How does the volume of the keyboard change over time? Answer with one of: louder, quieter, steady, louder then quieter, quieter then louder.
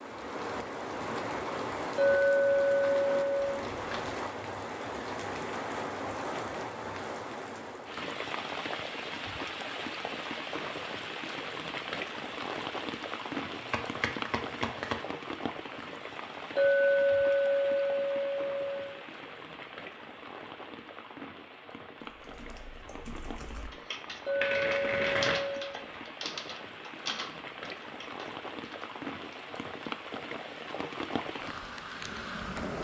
louder then quieter.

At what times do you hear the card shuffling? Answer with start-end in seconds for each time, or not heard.
3.4-4.2, 13.6-14.9, 24.1-26.0.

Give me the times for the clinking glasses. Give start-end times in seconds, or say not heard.
1.9-3.5, 16.6-18.9, 24.2-25.8.